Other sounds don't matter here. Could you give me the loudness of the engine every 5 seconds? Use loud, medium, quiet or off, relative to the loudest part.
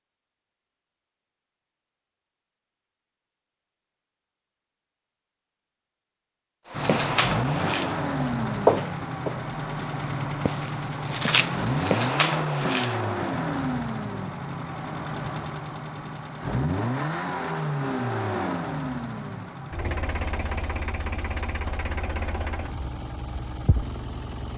off, loud, loud, loud, medium.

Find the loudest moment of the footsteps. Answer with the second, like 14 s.
9 s.